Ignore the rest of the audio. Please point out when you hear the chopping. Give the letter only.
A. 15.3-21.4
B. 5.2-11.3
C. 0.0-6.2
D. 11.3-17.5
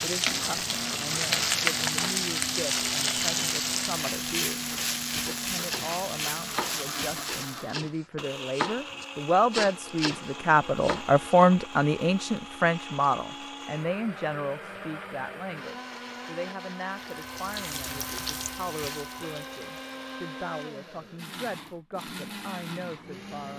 B.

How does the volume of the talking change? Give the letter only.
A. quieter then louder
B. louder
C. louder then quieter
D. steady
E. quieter
C.